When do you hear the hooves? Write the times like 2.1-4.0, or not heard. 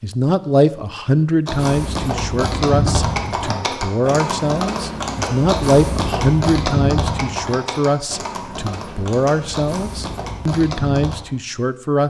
1.4-11.2.